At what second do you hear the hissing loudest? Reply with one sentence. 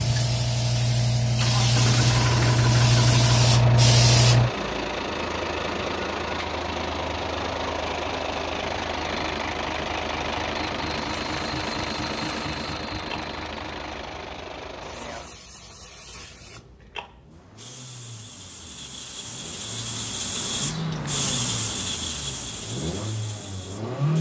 The volume of the hissing peaks at 4 seconds.